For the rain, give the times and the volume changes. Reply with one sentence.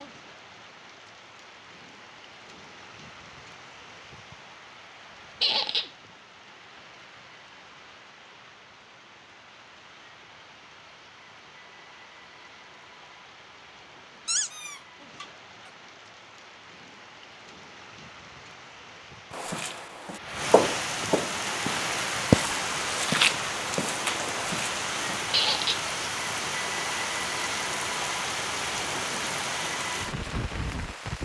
The rain can be heard from 0.0 to 31.1 s, getting louder.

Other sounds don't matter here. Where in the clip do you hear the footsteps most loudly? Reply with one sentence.
The volume of the footsteps peaks at 22 seconds.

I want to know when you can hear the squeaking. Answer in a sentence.
You can hear the squeaking from 5.4 to 5.9 s, from 14.2 to 15.2 s and from 25.3 to 25.8 s.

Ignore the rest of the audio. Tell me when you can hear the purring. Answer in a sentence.
The purring can't be heard in this clip.